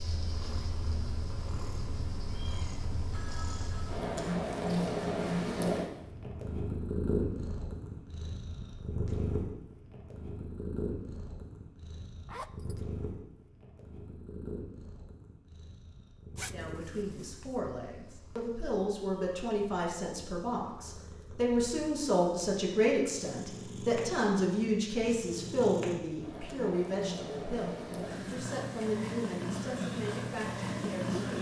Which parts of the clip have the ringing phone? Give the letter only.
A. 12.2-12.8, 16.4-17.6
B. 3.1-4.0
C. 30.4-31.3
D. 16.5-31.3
B.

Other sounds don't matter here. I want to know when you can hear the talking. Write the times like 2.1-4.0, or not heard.
16.5-31.3.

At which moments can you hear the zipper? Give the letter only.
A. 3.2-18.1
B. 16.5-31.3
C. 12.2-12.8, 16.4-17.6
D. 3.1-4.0
C.